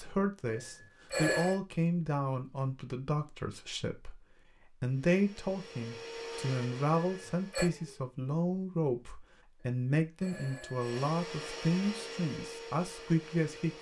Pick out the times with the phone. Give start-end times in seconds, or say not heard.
0.5-1.6, 7.0-7.7, 9.6-10.9.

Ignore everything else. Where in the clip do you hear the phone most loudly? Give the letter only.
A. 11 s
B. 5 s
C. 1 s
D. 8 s
C.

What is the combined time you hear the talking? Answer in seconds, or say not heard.
13 s.